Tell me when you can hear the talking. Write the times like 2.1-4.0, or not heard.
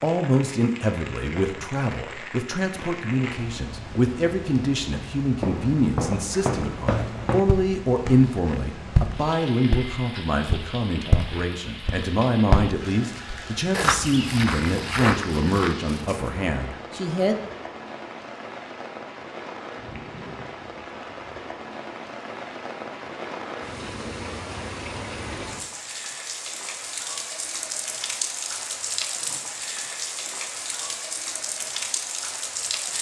0.0-17.4.